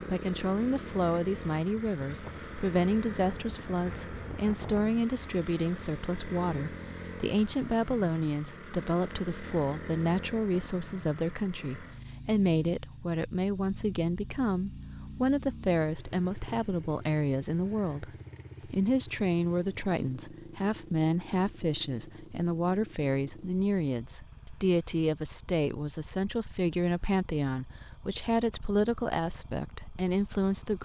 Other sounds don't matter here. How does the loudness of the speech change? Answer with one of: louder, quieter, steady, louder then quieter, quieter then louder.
steady.